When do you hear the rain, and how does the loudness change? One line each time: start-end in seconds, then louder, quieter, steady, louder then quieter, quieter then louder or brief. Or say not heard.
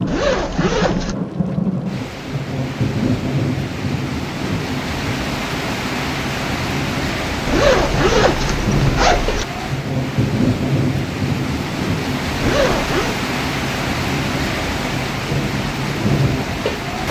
0.0-17.0 steady.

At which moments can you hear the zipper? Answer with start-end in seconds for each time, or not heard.
0.1-1.1, 7.5-9.4, 12.4-13.2.